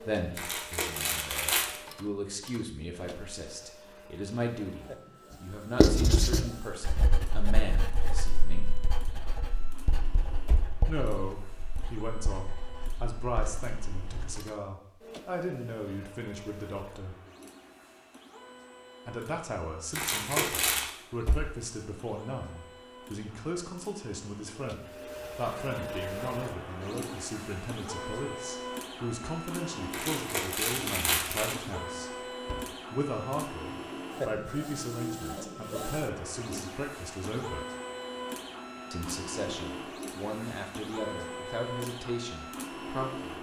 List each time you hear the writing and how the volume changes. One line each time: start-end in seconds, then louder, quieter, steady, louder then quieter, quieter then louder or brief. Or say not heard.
5.8-14.4 quieter.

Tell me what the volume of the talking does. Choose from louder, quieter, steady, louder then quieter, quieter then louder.
steady.